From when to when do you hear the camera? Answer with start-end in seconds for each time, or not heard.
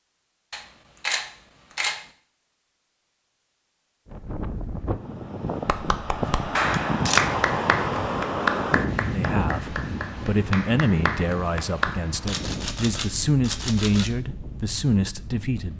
0.5-2.0, 6.2-7.2, 12.2-14.2.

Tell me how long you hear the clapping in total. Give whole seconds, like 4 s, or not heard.
6 s.